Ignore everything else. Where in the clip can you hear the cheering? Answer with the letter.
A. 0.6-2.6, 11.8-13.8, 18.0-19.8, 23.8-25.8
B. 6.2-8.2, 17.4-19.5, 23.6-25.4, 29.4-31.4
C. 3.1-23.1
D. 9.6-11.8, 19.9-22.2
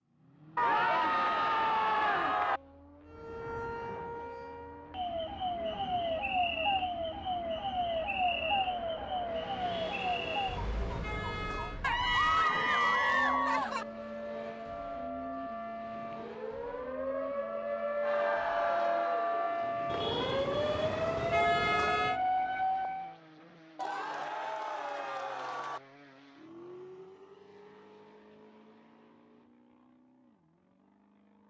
A.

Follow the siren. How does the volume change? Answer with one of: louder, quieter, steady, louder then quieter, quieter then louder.
quieter then louder.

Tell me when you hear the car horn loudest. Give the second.
22 s.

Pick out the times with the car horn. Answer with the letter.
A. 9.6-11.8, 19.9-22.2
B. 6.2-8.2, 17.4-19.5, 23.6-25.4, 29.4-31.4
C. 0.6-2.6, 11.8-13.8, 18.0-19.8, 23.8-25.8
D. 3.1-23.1
A.